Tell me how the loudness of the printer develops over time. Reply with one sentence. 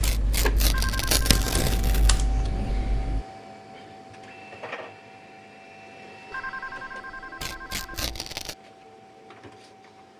The loudness of the printer goes down.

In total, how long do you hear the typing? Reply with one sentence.
The typing can be heard for 3 seconds in total.